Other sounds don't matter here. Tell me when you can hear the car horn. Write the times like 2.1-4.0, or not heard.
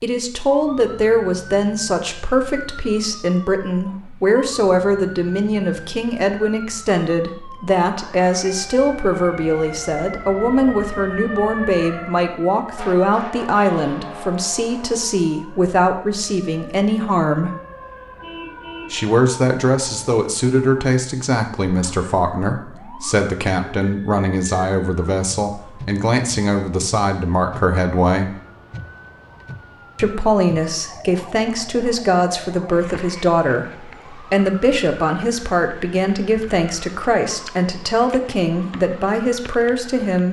18.2-19.0.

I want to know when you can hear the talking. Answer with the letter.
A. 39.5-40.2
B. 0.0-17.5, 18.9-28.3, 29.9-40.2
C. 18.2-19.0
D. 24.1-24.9
B.